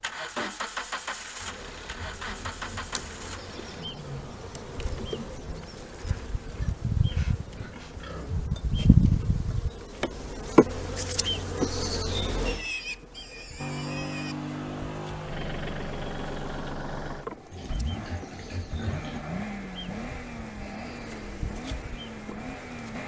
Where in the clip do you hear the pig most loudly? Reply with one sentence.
The loudest moment of the pig is at 13 seconds.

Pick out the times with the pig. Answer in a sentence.
The pig can be heard from 1.4 to 3.0 s, from 6.0 to 8.4 s, from 12.4 to 14.3 s and from 17.5 to 19.2 s.